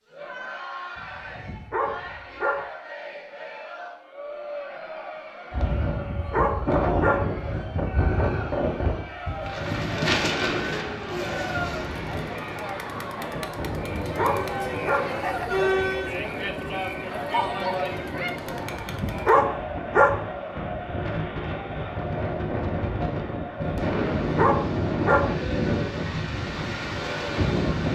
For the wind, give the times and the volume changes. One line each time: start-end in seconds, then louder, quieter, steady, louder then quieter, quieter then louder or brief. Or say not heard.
5.5-27.8 quieter then louder.